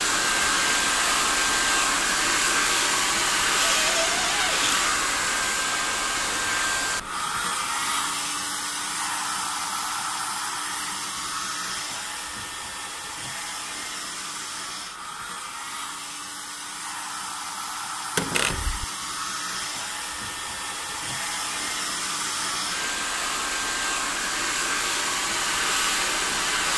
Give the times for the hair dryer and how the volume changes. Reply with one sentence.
The hair dryer can be heard from 0.0 to 26.7 s, getting quieter then louder.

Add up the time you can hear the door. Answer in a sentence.
The door can be heard for 2 seconds in total.